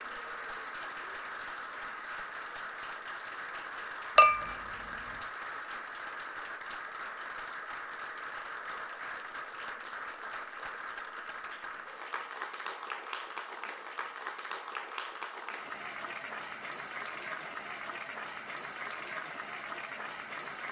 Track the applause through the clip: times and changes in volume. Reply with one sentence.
You can hear the applause from 0.0 to 20.6 s, at a steady volume.